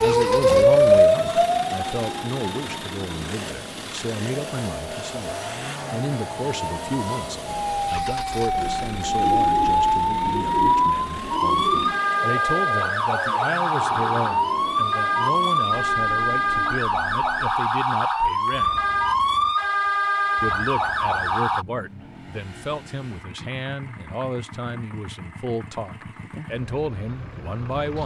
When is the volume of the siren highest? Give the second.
1 s.